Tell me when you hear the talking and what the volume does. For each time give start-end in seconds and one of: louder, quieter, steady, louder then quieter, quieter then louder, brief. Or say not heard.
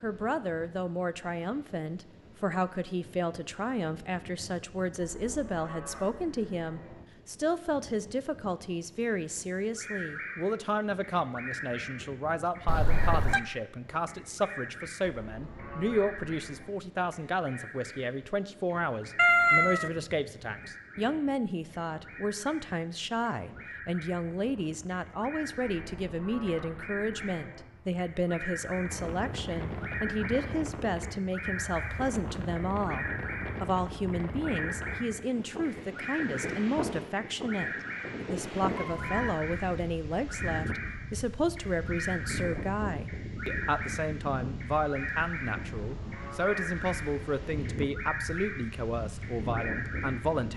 0.0-50.5 steady.